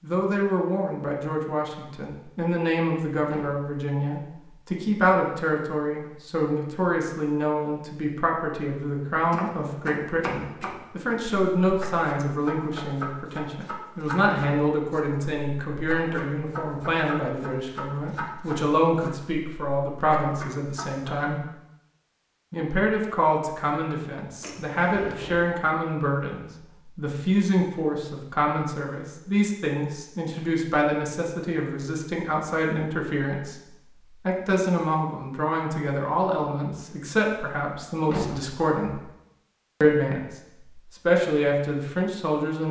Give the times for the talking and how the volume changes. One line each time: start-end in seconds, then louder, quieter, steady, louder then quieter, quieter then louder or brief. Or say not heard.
0.0-21.4 steady
22.5-39.0 steady
39.8-42.6 brief.